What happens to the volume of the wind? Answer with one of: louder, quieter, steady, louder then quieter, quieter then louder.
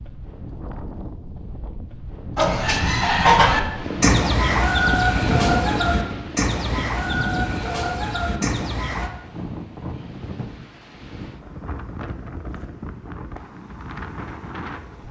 louder then quieter.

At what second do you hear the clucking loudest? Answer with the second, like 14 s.
3 s.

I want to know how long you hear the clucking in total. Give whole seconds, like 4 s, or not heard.
7 s.